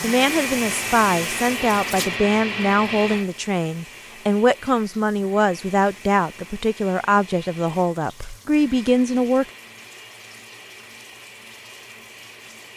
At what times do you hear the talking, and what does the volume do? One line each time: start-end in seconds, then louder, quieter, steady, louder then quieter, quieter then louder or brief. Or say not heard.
0.0-9.4 steady.